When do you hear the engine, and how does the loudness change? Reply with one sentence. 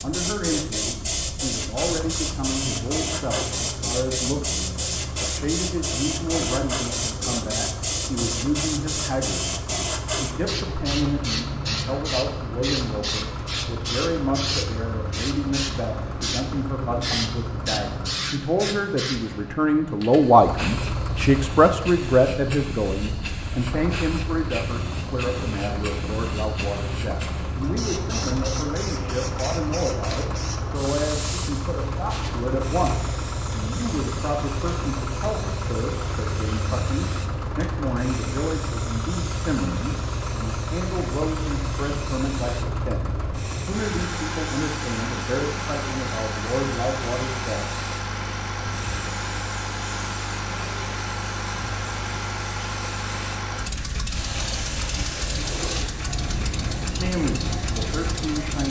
The engine can be heard from 0.0 to 18.2 s, at a steady volume; and from 20.4 to 58.6 s, at a steady volume.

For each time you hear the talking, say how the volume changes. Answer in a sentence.
The talking can be heard from 0.0 to 47.6 s, getting louder then quieter; and briefly from 57.0 to 58.6 s.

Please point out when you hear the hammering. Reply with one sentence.
The hammering can't be heard in this clip.